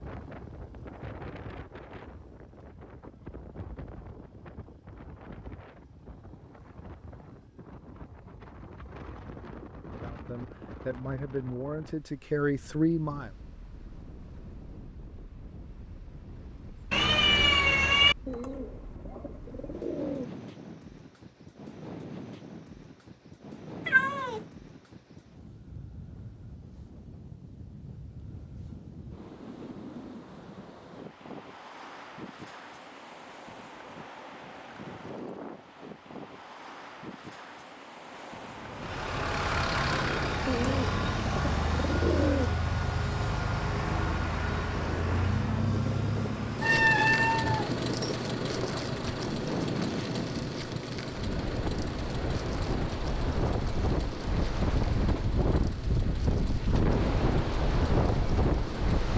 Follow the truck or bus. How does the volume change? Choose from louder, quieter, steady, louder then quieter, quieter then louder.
quieter.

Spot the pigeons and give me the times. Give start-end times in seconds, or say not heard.
18.2-20.3, 40.5-42.5.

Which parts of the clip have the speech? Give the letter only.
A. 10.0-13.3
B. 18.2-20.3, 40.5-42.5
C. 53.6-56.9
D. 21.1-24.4
A.